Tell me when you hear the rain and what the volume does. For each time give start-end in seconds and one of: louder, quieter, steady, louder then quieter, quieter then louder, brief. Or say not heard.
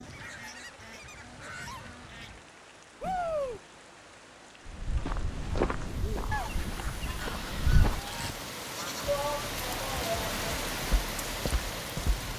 0.0-12.3 louder.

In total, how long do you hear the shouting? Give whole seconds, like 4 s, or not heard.
2 s.